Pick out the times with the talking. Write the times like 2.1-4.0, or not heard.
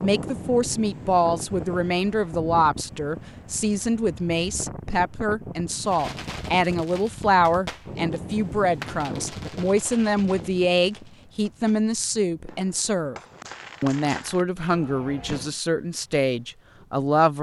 0.0-13.2, 13.8-17.3.